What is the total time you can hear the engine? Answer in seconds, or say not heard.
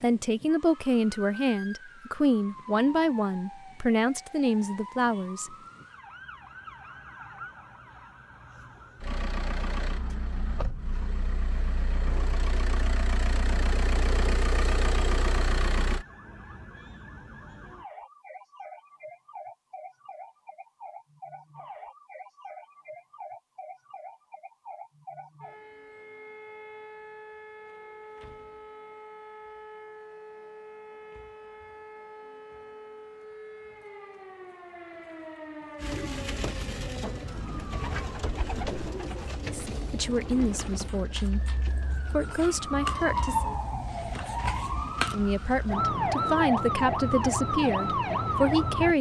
7 s.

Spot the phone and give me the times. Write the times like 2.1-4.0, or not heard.
not heard.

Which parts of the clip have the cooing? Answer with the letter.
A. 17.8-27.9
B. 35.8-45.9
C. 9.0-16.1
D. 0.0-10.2
B.